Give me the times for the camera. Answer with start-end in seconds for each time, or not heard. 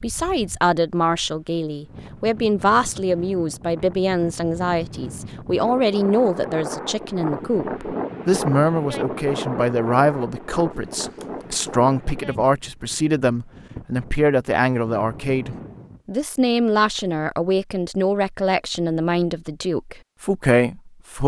10.7-11.7.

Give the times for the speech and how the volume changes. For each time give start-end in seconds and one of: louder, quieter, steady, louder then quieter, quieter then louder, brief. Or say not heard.
0.0-21.2 steady.